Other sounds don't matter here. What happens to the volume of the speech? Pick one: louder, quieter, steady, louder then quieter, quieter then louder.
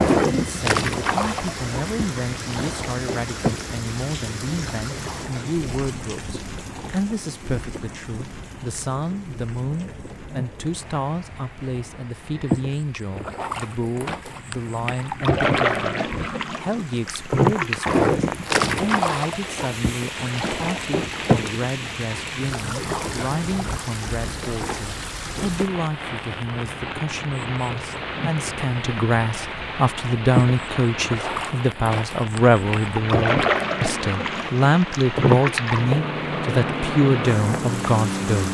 louder.